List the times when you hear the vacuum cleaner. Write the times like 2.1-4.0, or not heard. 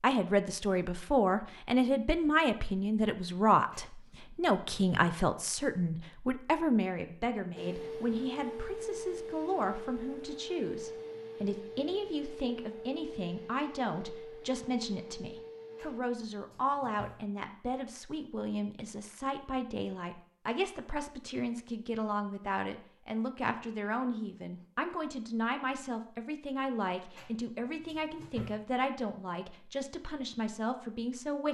7.5-16.0.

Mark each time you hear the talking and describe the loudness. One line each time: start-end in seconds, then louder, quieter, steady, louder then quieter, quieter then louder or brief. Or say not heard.
0.0-31.4 quieter.